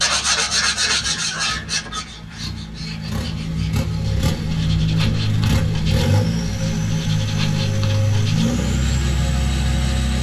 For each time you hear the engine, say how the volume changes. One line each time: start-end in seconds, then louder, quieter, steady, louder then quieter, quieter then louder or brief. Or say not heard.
0.0-10.1 louder.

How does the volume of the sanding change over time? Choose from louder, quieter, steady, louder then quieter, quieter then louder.
quieter.